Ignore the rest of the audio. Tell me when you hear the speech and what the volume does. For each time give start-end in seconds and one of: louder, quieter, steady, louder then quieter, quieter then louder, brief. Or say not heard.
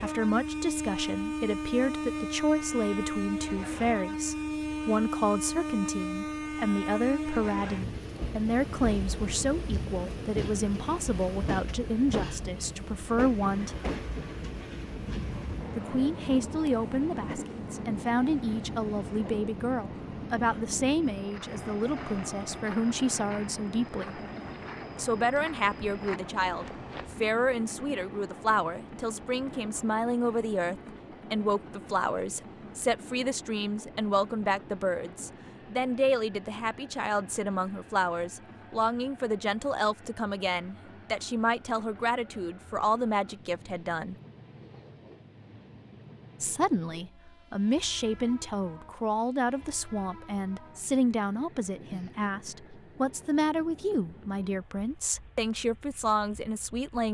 0.0-13.8 steady
15.8-24.2 steady
24.9-44.1 steady
46.4-57.0 steady.